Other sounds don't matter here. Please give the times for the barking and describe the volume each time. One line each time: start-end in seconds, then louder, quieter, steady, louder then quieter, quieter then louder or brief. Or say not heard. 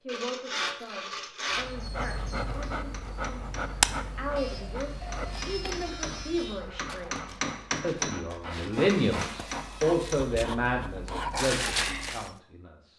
1.5-12.3 quieter then louder.